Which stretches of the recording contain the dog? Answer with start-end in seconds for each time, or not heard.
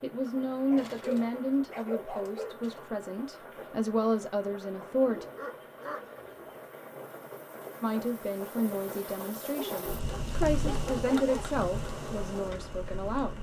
0.5-2.8, 5.0-6.6, 9.6-11.4.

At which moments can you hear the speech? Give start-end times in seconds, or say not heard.
0.0-5.2, 7.8-13.3.